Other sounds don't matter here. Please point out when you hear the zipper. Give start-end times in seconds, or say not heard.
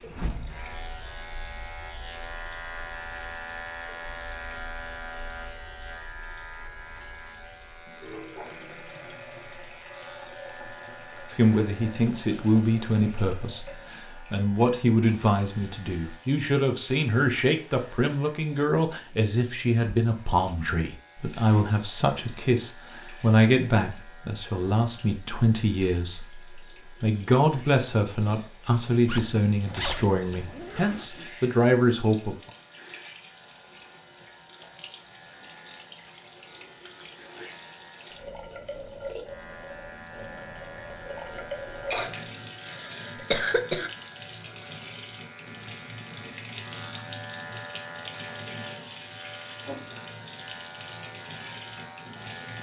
29.1-31.3.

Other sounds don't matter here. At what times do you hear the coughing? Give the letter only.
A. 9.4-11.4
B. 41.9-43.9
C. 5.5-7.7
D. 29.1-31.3
B.